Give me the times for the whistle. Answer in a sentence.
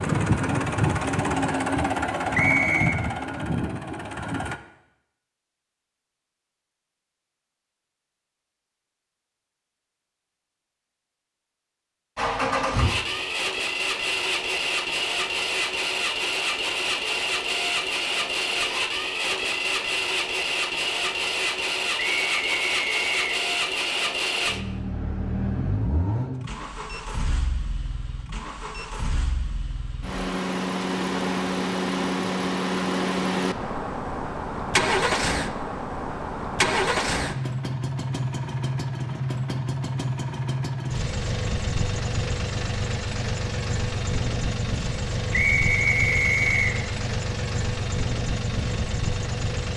The whistle can be heard from 2.3 to 3.0 s, from 21.9 to 23.4 s and from 45.3 to 46.8 s.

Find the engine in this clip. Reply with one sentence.
The engine can be heard from 0.0 to 4.6 s and from 12.2 to 49.7 s.